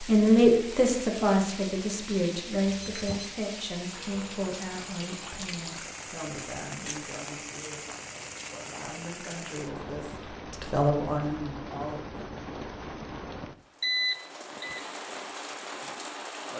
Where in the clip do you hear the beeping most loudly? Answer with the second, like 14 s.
14 s.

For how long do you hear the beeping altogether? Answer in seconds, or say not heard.
2 s.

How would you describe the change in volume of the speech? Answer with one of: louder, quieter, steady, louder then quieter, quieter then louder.
quieter then louder.